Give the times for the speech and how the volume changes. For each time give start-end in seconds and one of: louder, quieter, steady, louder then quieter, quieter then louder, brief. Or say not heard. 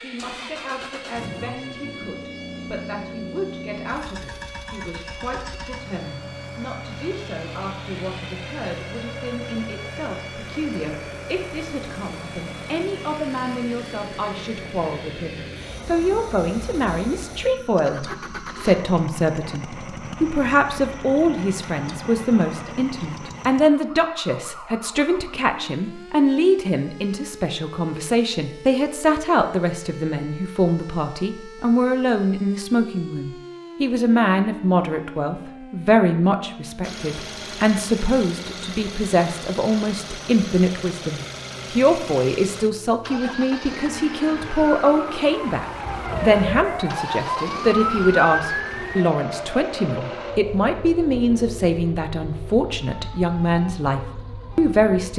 0.0-55.1 louder.